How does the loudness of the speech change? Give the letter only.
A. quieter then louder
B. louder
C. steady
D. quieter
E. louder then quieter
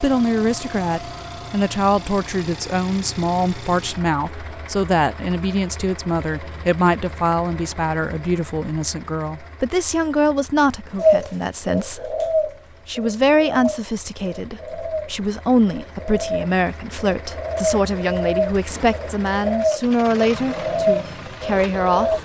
C.